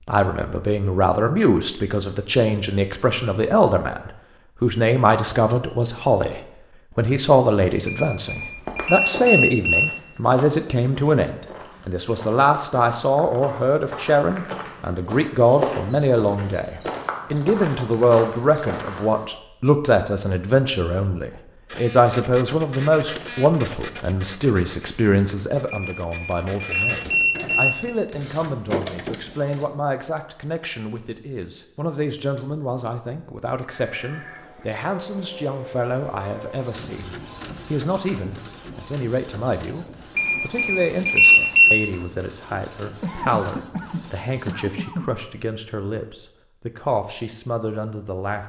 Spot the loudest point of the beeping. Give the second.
41 s.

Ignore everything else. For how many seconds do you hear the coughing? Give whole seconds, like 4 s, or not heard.
2 s.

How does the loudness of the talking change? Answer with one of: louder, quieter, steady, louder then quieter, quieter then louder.
quieter.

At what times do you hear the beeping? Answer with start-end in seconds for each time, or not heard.
7.8-9.9, 25.7-27.9, 40.1-41.8.